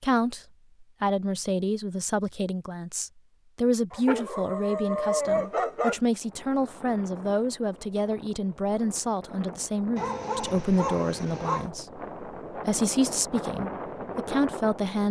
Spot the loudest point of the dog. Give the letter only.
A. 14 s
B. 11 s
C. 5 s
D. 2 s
C.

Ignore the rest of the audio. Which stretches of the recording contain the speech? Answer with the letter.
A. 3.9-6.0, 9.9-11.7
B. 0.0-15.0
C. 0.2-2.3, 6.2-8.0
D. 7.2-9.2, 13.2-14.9
B.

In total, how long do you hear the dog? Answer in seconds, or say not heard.
4 s.